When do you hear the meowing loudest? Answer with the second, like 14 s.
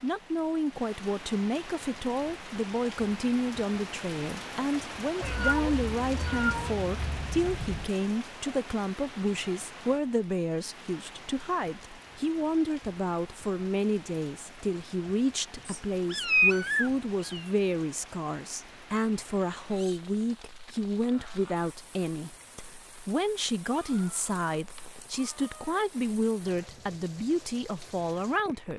16 s.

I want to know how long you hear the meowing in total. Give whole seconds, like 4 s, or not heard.
7 s.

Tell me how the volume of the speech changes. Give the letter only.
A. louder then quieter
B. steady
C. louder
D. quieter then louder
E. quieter
B.